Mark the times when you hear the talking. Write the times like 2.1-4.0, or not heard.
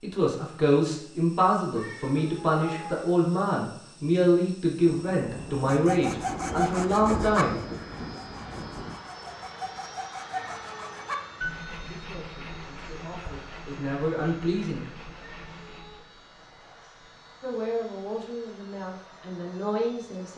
0.0-7.5, 11.8-14.9, 17.4-20.3.